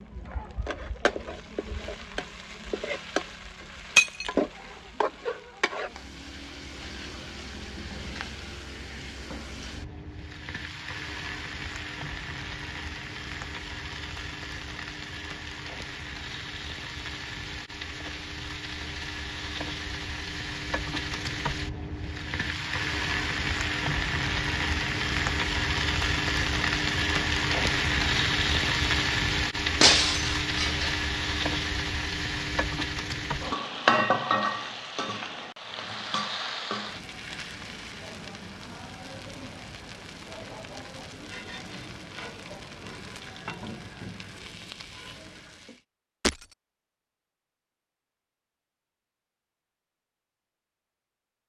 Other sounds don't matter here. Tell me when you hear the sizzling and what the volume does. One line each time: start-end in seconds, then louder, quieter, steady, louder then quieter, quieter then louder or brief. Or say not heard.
0.0-45.9 louder then quieter.